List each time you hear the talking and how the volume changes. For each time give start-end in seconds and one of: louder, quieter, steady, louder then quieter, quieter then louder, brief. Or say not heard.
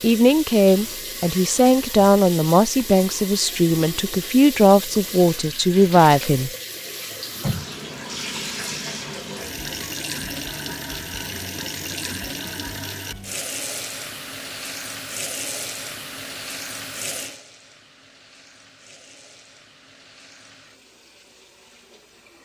0.0-6.5 steady.